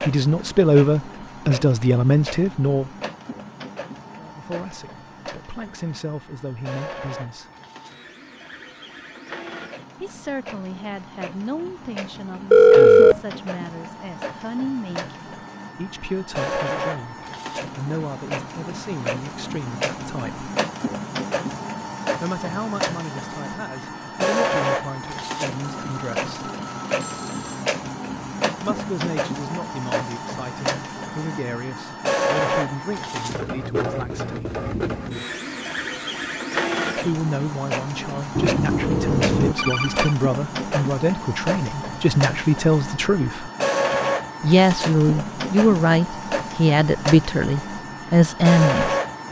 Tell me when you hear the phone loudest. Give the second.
13 s.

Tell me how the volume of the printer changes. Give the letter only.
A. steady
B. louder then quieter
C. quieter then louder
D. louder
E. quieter
D.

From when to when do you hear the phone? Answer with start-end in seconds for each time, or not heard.
12.5-13.2, 25.6-27.6, 38.4-40.1.